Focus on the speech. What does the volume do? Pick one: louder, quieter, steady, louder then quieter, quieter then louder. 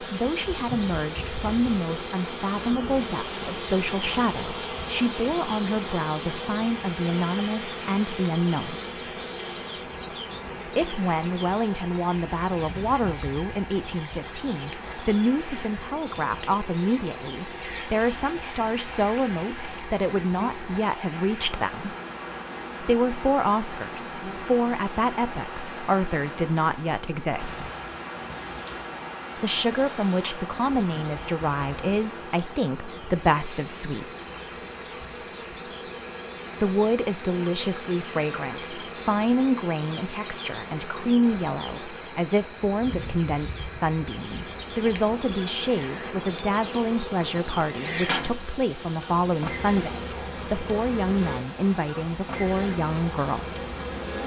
steady.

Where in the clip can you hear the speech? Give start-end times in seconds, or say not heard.
0.0-8.8, 10.7-21.9, 22.8-27.6, 29.4-34.1, 36.6-53.6.